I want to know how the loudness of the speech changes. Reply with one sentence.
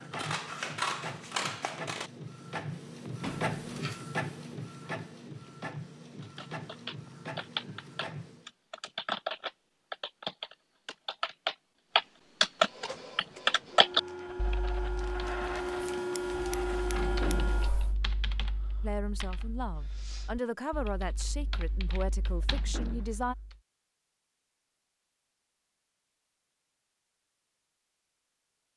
The volume of the speech goes up, then down.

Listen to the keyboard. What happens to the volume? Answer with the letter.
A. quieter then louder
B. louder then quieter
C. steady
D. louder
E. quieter
B.